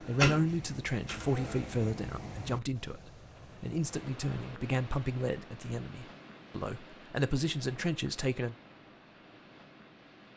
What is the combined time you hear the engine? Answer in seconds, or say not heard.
2 s.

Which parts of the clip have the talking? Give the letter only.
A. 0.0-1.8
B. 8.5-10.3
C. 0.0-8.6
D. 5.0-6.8
C.